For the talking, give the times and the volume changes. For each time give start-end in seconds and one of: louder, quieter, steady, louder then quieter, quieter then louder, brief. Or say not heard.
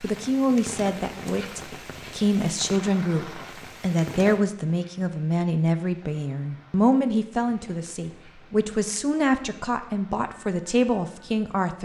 0.0-11.7 steady.